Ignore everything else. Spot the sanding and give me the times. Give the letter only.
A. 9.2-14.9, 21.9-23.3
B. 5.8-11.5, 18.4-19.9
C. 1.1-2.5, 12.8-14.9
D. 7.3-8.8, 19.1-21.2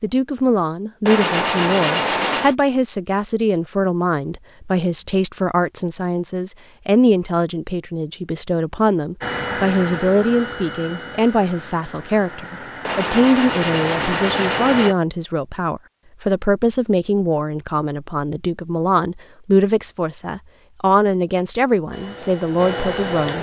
C.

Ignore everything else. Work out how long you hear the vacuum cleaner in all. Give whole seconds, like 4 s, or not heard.
7 s.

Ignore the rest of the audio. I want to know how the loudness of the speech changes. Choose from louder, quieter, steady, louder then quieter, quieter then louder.
steady.